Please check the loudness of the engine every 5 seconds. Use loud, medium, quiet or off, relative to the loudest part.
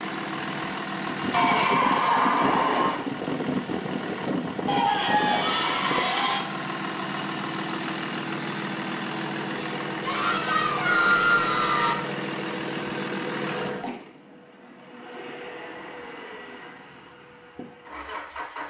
loud, loud, loud, medium.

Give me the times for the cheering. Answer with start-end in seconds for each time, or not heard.
1.3-3.0, 4.7-6.5, 10.0-11.9, 15.1-16.8.